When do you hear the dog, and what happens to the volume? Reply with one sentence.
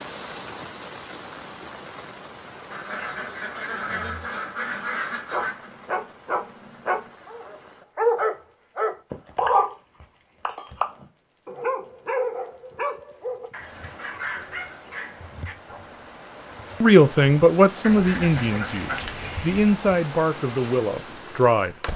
The dog can be heard from 5.3 to 15.8 s, getting louder then quieter.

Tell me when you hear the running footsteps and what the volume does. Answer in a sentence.
The running footsteps can't be heard in this clip.